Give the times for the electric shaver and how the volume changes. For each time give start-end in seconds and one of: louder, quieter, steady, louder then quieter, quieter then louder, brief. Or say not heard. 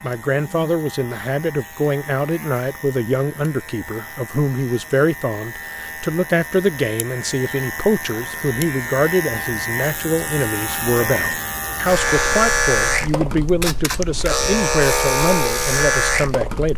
0.0-16.7 louder.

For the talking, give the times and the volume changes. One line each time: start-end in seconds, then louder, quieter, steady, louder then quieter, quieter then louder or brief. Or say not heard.
0.0-16.7 steady.